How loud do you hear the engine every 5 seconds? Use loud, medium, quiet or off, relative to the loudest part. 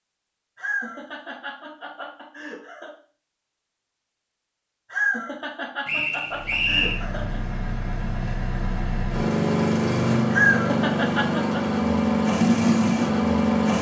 off, medium, loud.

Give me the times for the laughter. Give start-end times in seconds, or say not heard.
0.6-2.9, 4.9-7.4, 10.3-11.6.